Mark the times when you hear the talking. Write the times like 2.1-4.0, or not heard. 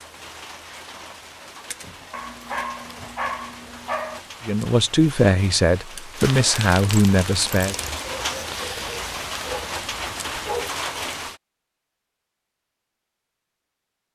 4.5-7.8.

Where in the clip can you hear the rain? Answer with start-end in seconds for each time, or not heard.
0.0-11.4.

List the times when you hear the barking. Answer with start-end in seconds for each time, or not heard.
2.1-4.2, 8.0-10.8.